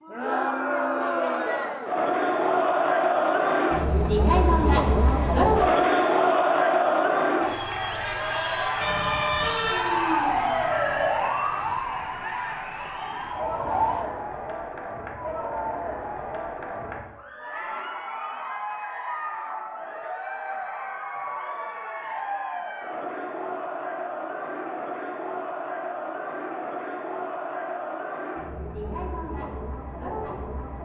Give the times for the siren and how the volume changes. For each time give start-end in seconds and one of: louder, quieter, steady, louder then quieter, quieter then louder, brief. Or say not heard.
8.8-14.1 quieter.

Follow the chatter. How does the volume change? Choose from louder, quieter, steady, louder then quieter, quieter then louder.
quieter.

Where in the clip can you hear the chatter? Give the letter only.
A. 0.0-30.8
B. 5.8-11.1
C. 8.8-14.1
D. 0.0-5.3
A.